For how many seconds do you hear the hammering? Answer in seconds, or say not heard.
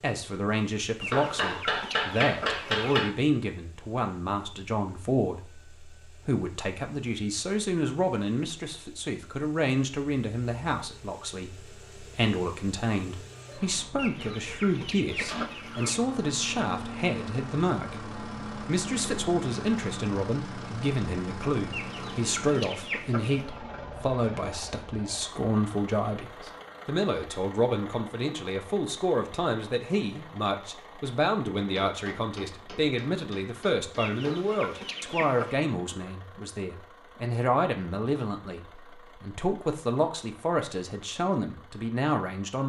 5 s.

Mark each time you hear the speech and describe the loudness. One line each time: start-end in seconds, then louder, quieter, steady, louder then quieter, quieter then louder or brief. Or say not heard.
0.0-42.6 steady.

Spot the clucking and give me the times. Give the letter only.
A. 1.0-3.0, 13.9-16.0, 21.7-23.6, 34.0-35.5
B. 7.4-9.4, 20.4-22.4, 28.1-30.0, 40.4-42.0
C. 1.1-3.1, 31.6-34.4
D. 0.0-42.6
A.